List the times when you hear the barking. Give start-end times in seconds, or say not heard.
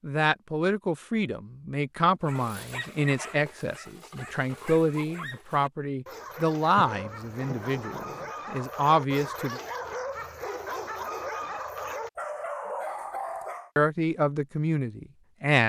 2.2-13.7.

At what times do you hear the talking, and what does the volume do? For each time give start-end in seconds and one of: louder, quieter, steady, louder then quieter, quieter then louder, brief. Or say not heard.
0.0-9.6 steady
13.8-15.6 brief.